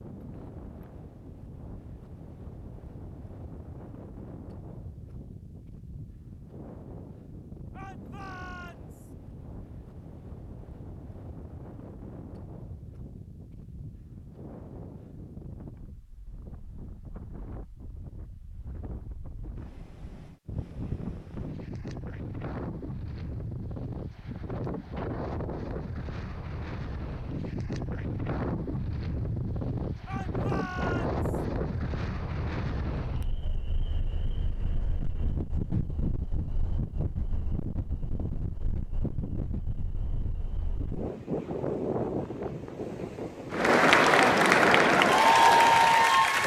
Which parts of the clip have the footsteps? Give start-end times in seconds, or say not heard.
not heard.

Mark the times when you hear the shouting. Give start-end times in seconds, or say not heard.
7.7-9.1, 30.1-31.4.